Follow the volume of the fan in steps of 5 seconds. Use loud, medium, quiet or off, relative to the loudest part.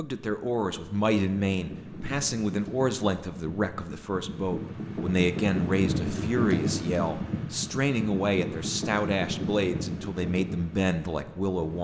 medium, loud, medium.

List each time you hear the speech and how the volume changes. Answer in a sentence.
The speech can be heard from 0.0 to 11.8 s, at a steady volume.